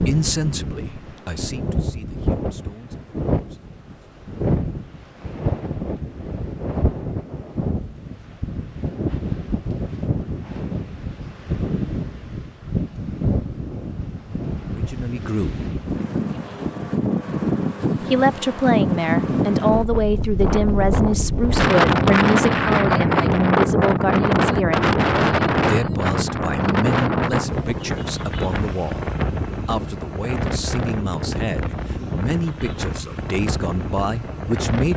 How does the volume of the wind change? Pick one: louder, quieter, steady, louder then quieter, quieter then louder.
louder then quieter.